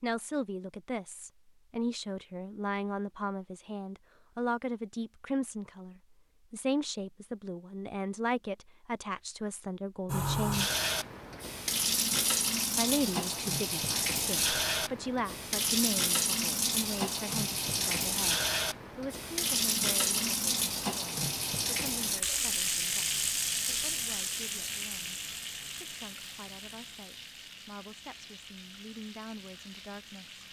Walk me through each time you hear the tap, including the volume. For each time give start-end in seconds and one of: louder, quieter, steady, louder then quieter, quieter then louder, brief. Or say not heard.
10.1-30.4 quieter.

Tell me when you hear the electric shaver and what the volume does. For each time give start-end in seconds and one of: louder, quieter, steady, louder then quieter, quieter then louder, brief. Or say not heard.
not heard.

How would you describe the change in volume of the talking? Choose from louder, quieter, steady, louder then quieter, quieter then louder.
quieter.